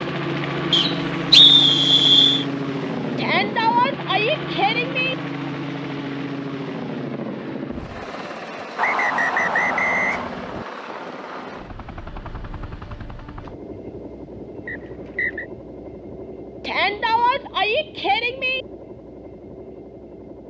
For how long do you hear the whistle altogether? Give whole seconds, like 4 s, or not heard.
4 s.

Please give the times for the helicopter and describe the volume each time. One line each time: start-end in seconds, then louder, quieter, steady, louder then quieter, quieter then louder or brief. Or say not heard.
0.0-20.4 quieter.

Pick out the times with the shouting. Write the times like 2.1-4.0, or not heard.
3.1-5.2, 16.6-18.6.